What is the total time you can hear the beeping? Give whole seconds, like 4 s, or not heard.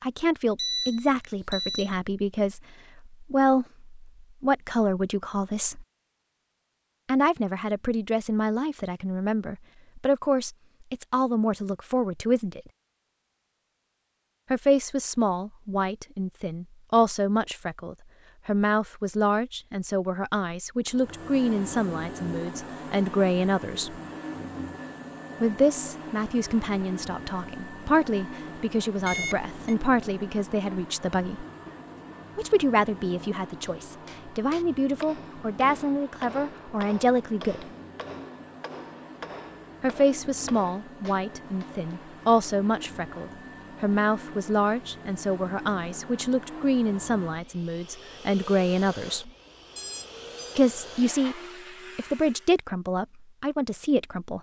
3 s.